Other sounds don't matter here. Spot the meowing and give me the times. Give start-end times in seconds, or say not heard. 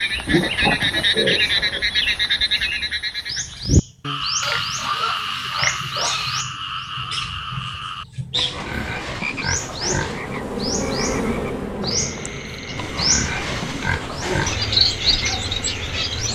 not heard.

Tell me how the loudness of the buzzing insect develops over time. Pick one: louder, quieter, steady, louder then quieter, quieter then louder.
quieter.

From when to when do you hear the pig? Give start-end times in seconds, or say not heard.
0.2-1.9, 4.4-6.5, 8.3-10.4, 12.8-14.7.